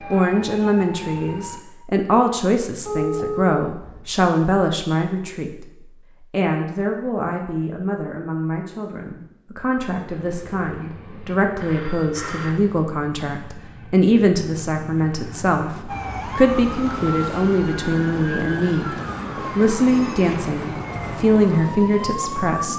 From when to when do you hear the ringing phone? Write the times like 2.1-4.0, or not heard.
2.9-4.0, 11.6-12.6, 19.9-20.3.